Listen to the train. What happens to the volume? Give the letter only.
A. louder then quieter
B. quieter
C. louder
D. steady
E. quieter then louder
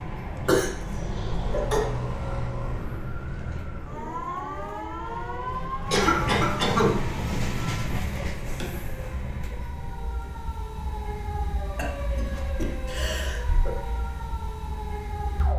A.